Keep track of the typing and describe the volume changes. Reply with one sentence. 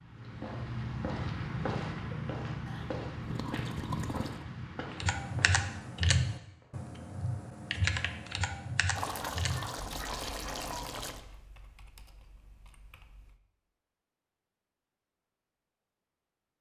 The loudness of the typing goes down.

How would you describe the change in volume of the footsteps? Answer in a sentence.
The loudness of the footsteps goes down.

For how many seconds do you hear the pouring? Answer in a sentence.
You can hear the pouring for 4 seconds altogether.